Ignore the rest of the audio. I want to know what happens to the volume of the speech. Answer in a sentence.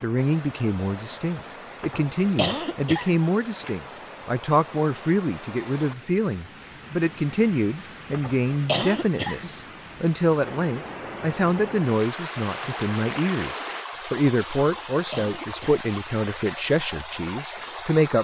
The loudness of the speech stays about the same.